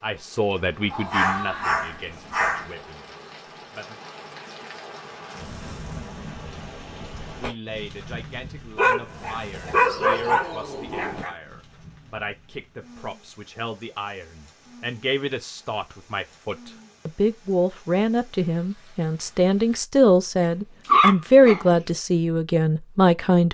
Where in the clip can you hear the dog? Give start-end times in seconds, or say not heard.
0.9-2.6, 8.8-11.3, 20.4-21.8.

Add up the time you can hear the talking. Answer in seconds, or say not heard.
20 s.